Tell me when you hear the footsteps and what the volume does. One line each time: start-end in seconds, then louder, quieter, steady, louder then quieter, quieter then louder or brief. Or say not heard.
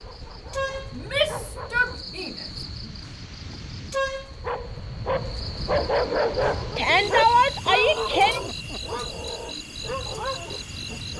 not heard.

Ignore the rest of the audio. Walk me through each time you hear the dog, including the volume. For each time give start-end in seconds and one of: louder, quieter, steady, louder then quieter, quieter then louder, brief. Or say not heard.
0.0-2.2 brief
4.4-11.1 quieter.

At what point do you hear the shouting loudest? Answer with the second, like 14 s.
7 s.